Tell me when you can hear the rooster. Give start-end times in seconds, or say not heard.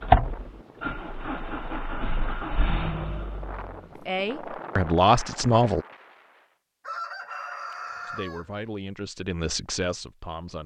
6.8-8.5.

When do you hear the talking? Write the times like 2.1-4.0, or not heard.
4.0-5.8, 8.1-10.6.